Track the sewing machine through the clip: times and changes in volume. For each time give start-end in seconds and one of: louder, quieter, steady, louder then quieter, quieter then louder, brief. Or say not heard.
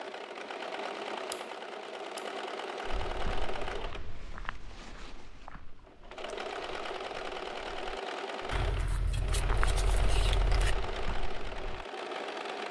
0.0-12.6 steady.